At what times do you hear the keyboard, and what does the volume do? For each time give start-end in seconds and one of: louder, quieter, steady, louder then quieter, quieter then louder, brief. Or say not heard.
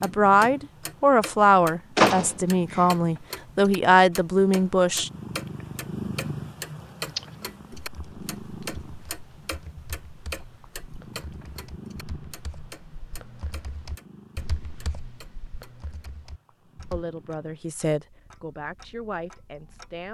7.0-17.1 louder.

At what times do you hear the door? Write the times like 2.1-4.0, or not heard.
1.9-2.8.